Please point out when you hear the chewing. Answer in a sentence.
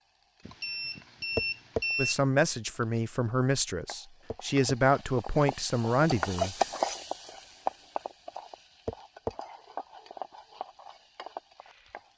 The chewing can't be heard in this clip.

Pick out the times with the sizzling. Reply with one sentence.
The sizzling can be heard from 0.0 to 12.1 s.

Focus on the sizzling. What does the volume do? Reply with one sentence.
The loudness of the sizzling goes up, then down.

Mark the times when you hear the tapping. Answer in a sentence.
You can hear the tapping from 1.4 to 1.9 s, from 4.3 to 4.8 s and from 8.8 to 9.3 s.